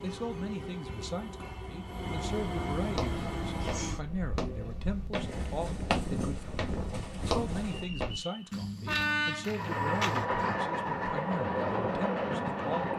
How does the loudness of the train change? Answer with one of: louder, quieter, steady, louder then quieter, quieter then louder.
louder.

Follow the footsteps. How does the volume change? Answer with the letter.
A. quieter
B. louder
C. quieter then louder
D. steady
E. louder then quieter
D.